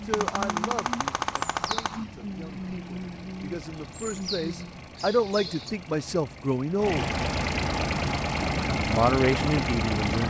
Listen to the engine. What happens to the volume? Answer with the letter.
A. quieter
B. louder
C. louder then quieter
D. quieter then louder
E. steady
B.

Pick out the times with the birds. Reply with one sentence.
You can hear the birds from 0.1 to 5.8 s.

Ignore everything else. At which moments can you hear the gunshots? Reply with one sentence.
You can hear the gunshots from 0.1 to 2.0 s.